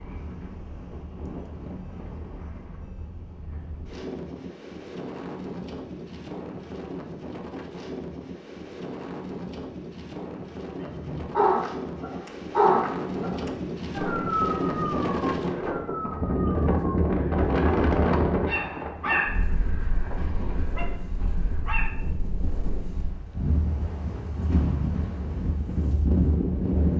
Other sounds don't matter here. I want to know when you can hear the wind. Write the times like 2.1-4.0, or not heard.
0.0-26.9.